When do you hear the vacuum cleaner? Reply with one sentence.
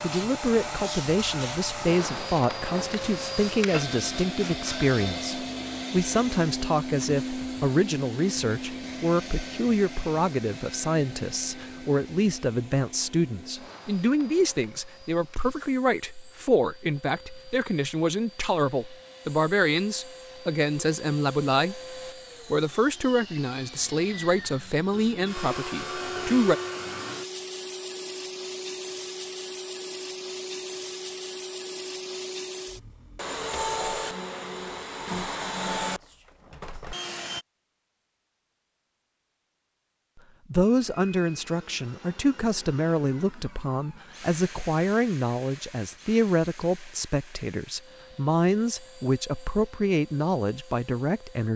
You can hear the vacuum cleaner from 0.0 to 37.5 s and from 40.6 to 51.5 s.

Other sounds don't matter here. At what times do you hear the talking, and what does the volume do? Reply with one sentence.
The talking can be heard from 0.0 to 26.6 s, at a steady volume; and from 40.5 to 51.5 s, at a steady volume.